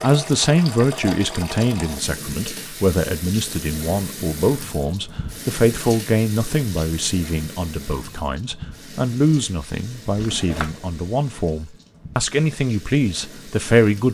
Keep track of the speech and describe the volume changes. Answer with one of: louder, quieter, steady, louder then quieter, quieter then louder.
steady.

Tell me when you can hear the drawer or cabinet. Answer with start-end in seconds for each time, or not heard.
10.1-10.9.